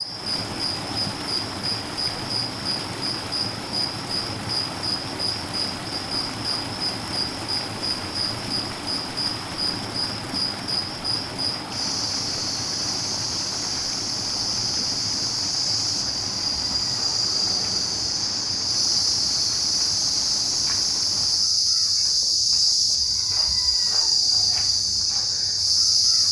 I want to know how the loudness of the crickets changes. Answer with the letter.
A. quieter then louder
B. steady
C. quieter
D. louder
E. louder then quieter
D.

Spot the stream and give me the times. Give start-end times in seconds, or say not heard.
0.0-21.6.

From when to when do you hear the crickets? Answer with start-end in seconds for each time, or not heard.
0.0-26.2.